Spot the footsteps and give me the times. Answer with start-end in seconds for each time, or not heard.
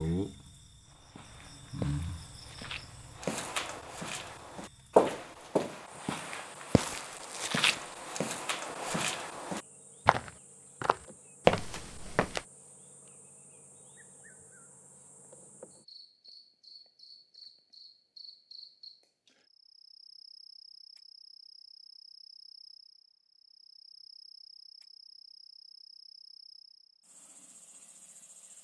1.1-12.4.